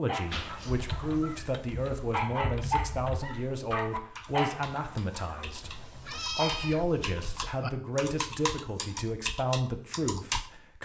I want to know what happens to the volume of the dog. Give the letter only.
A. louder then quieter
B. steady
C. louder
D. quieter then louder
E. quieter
A.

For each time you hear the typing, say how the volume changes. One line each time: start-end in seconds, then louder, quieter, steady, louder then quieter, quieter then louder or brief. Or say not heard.
0.7-10.5 quieter then louder.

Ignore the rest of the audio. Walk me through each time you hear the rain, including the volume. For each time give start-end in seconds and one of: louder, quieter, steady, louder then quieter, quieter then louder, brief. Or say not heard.
not heard.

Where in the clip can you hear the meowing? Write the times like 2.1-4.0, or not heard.
0.2-1.5, 5.5-7.5.